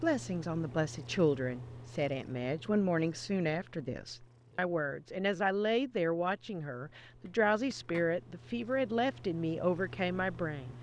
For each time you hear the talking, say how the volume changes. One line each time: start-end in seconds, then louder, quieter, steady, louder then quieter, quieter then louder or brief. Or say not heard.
0.0-10.7 steady.